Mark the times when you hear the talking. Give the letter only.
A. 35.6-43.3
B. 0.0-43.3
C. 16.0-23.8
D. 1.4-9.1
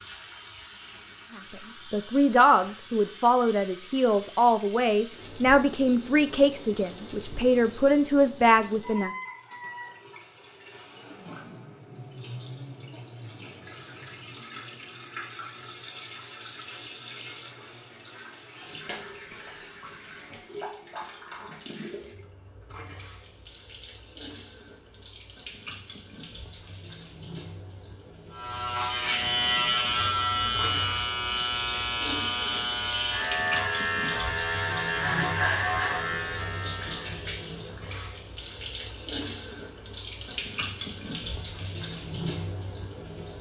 D.